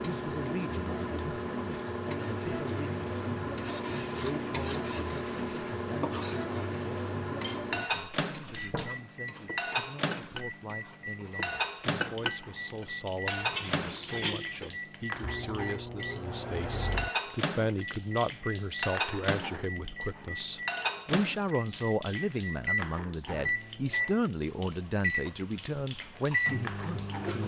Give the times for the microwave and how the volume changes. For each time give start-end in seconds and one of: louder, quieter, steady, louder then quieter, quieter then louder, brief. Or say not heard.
0.0-27.4 steady.